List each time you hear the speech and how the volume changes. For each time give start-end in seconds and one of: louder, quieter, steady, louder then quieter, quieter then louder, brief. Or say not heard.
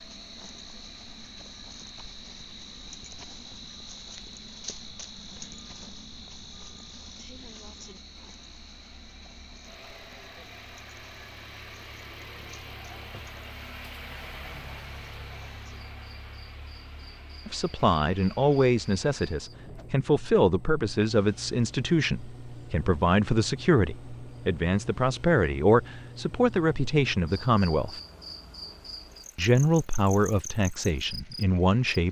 17.4-28.0 steady
29.4-32.0 brief.